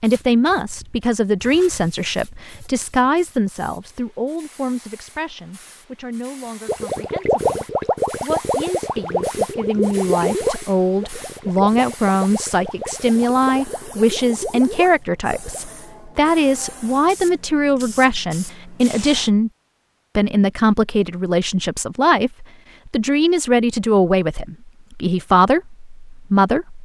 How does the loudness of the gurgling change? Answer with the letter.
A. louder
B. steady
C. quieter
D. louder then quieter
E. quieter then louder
C.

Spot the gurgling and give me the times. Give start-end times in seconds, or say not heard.
6.7-15.7.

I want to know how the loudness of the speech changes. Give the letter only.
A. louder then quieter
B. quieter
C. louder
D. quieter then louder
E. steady
D.